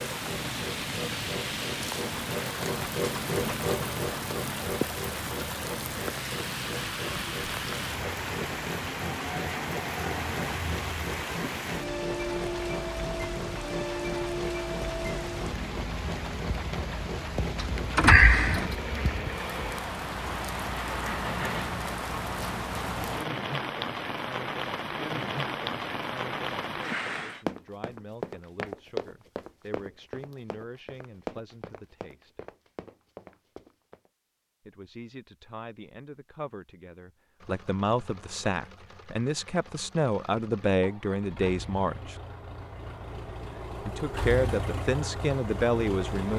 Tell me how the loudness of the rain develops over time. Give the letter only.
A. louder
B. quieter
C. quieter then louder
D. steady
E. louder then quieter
D.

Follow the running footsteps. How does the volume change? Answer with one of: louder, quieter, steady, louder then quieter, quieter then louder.
quieter.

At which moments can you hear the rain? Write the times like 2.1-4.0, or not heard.
0.0-27.4.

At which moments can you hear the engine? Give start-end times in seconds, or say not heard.
0.0-21.8, 37.4-46.3.